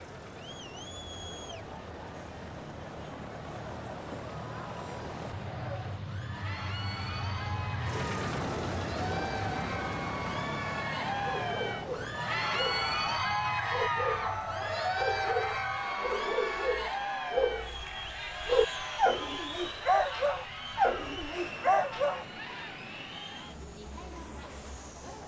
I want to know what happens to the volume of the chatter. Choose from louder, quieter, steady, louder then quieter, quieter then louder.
louder then quieter.